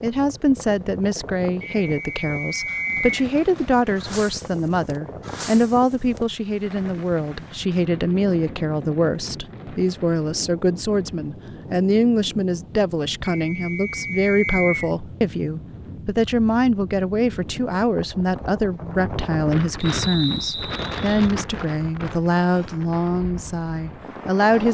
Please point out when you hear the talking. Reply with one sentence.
You can hear the talking from 0.0 to 24.6 s.